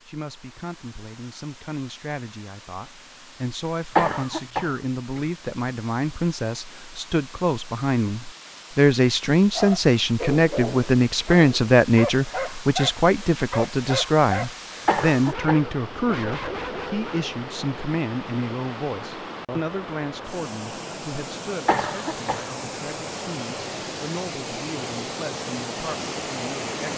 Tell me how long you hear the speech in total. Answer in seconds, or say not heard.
27 s.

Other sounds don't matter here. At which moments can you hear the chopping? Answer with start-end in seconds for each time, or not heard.
not heard.